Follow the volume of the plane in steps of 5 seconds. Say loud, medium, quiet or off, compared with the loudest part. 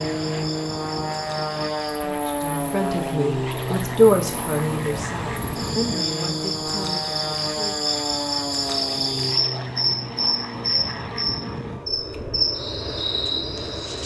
loud, loud, medium.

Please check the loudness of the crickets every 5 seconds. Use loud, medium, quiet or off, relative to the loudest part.
quiet, loud, loud.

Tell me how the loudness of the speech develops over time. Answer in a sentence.
The loudness of the speech goes up, then down.